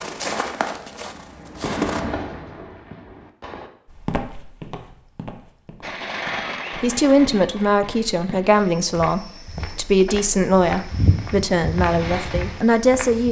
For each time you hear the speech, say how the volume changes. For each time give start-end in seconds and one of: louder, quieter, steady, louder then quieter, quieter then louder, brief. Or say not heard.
6.8-13.2 steady.